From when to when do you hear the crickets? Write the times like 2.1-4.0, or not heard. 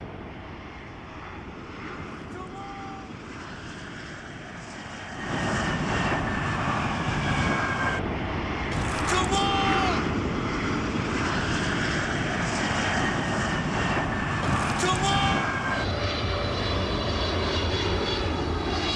not heard.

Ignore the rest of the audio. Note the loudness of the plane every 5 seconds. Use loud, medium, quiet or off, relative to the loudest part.
quiet, loud, loud, loud.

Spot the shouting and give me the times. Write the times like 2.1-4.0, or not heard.
2.1-3.1, 8.7-10.1, 14.4-15.5.